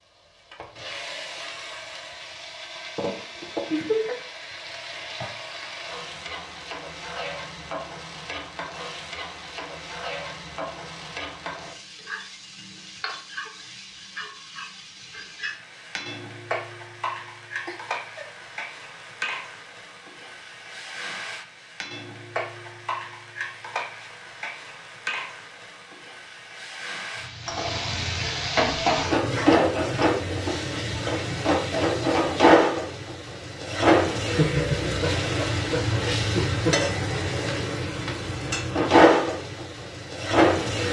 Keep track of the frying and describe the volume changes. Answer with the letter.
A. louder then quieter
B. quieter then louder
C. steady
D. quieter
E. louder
E.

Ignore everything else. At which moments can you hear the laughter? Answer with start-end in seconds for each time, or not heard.
3.7-4.2, 17.6-18.2, 34.3-36.8.